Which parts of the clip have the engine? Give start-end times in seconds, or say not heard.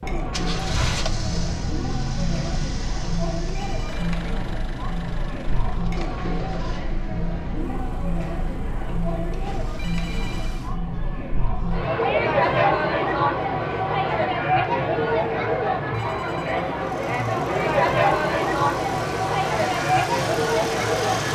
0.1-10.8, 16.8-21.3.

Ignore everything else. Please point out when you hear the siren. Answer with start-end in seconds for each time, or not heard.
not heard.